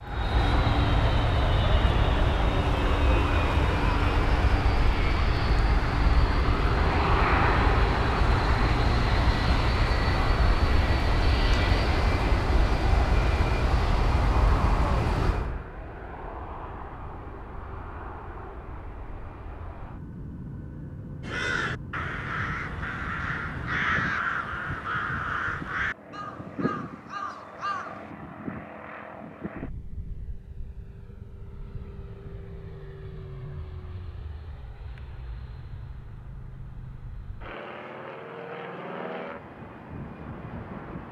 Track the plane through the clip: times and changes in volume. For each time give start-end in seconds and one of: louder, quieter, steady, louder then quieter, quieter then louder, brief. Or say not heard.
0.0-41.0 quieter.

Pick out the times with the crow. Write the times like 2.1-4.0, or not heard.
21.2-28.1.